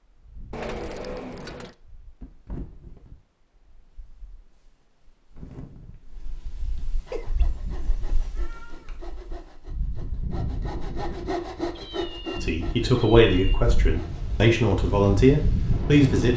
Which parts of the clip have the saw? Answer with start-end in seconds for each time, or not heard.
7.0-14.2.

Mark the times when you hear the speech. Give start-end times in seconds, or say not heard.
12.4-16.3.